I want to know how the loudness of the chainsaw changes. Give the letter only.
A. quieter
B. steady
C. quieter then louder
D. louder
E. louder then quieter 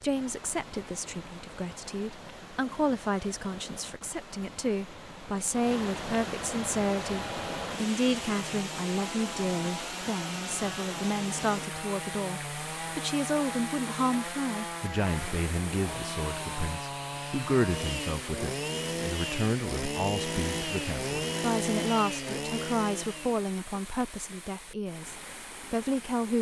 D.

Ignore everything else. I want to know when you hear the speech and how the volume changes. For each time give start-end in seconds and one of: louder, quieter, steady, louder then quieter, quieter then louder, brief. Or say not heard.
0.0-26.3 steady.